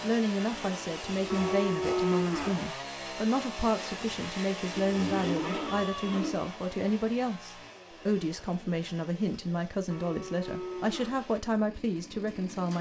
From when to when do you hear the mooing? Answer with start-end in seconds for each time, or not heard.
1.3-2.6, 4.8-6.5, 9.9-11.2.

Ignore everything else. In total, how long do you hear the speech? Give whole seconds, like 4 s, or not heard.
13 s.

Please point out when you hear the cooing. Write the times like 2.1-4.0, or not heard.
not heard.